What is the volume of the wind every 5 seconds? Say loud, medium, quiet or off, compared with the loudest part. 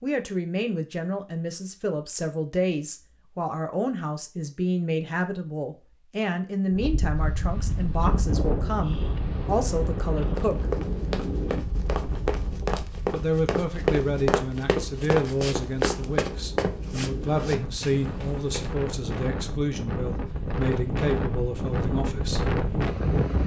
off, loud, medium, medium, loud.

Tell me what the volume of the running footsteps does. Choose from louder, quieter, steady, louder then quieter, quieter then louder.
louder then quieter.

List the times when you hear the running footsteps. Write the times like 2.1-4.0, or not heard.
10.3-18.7.